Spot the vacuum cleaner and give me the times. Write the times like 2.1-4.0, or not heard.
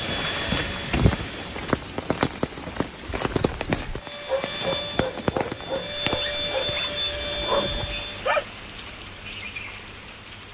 0.0-1.6, 4.0-8.2.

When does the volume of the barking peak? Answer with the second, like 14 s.
8 s.